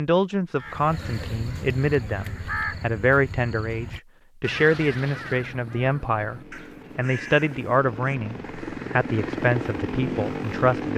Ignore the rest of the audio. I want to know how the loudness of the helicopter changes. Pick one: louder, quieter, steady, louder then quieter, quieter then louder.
louder.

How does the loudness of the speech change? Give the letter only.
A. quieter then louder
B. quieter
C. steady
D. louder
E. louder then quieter
C.